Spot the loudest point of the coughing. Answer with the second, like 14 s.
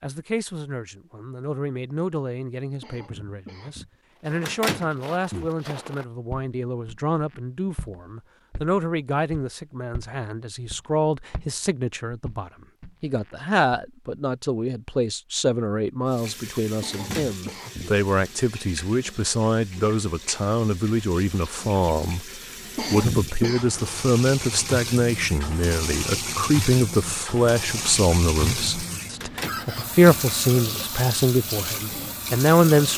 23 s.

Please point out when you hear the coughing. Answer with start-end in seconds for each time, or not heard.
2.8-4.0, 16.8-17.9, 22.8-23.6.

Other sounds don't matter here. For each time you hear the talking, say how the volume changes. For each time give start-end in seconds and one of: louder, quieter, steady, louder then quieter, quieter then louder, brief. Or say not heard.
0.0-32.9 louder.